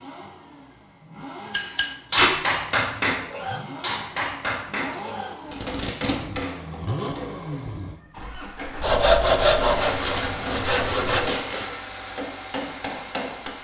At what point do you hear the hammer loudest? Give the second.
3 s.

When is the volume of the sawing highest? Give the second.
9 s.